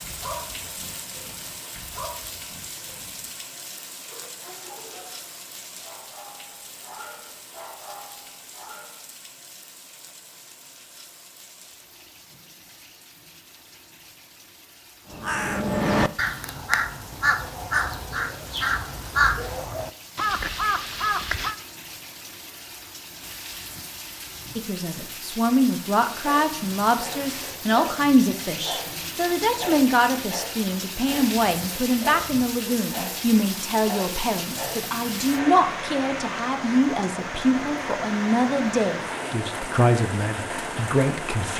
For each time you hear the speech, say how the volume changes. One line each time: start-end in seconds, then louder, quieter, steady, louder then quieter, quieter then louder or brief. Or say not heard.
24.6-41.5 steady.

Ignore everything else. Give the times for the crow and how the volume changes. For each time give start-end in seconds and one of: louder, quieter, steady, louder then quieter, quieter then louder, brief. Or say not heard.
15.1-21.6 steady.